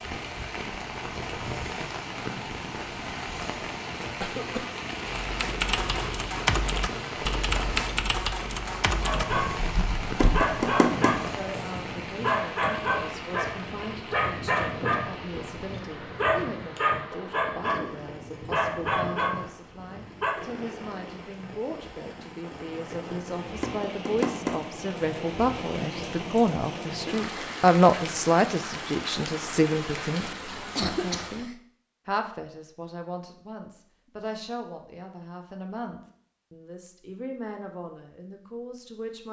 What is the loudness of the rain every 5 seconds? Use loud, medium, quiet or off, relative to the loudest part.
loud, loud, loud, medium, medium, loud, loud, off.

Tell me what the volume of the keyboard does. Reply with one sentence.
The loudness of the keyboard goes down.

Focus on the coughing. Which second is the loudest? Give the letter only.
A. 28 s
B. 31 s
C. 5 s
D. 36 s
B.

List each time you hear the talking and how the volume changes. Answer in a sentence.
You can hear the talking from 11.3 to 39.2 s, getting louder then quieter.